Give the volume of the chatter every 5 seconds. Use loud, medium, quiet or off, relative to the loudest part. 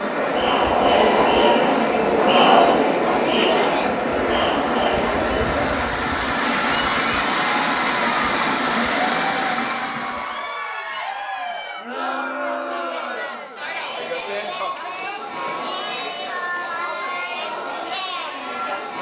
loud, medium, medium, medium.